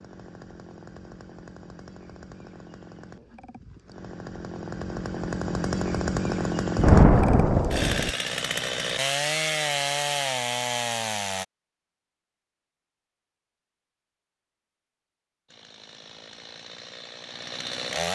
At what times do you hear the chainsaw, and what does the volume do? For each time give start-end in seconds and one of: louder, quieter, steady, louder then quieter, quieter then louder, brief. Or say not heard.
0.0-11.4 louder
15.5-18.1 brief.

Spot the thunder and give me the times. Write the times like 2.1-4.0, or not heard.
6.8-8.1.